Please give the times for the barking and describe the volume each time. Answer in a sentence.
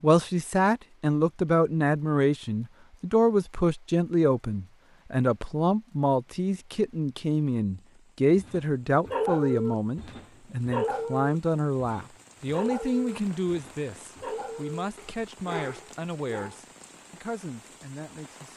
The barking can be heard from 8.3 to 16.6 s, getting quieter.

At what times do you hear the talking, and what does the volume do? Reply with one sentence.
You can hear the talking from 0.0 to 18.5 s, getting quieter.